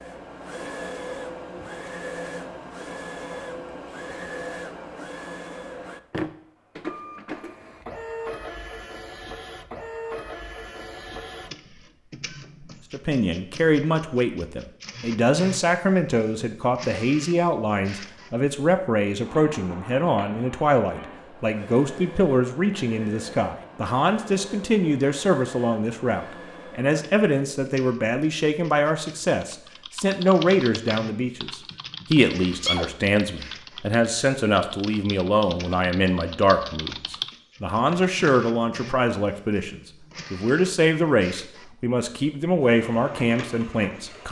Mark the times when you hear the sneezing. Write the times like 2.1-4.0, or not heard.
32.4-33.0.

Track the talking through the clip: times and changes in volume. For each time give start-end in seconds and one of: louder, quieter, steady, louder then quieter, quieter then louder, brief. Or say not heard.
12.9-44.2 steady.